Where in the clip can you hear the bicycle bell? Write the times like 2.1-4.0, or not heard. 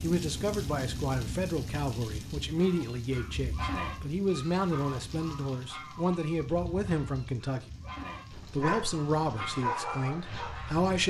not heard.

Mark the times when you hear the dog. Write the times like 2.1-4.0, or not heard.
8.3-11.0.